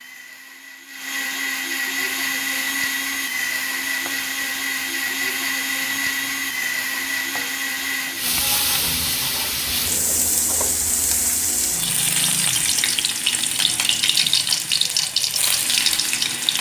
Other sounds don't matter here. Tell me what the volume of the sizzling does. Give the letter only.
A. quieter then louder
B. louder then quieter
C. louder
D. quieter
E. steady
C.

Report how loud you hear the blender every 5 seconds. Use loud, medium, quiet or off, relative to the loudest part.
loud, loud, quiet, quiet.